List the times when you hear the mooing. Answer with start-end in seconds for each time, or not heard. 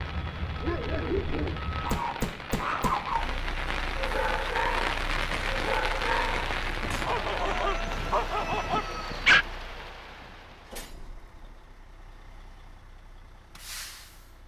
not heard.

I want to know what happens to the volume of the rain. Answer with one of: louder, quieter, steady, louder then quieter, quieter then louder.
louder then quieter.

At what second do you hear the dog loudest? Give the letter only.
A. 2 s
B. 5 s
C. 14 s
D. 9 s
D.